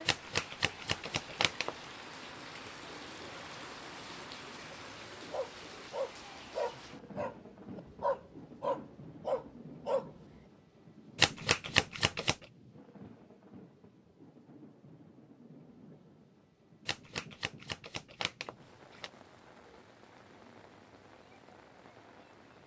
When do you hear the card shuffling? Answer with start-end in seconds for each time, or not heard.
0.1-1.8, 11.2-12.4, 16.9-19.1.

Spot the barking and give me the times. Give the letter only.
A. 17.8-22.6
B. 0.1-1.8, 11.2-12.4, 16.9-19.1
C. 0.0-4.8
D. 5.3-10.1
D.